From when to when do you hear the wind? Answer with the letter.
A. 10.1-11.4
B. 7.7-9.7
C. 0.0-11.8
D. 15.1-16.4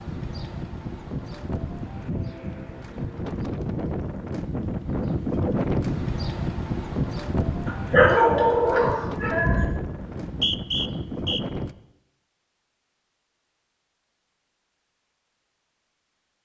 C.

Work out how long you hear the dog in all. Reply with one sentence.
The dog can be heard for 2 seconds in total.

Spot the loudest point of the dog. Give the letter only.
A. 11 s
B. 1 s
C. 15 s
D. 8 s
D.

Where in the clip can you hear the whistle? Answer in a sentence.
You can hear the whistle from 10.1 to 11.4 s.